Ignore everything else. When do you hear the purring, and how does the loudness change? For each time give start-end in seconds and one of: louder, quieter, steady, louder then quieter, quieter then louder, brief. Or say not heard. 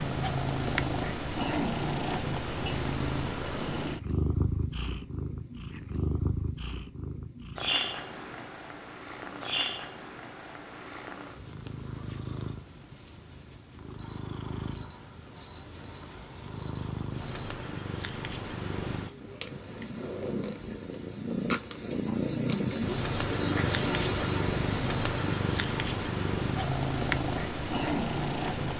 0.0-28.7 quieter then louder.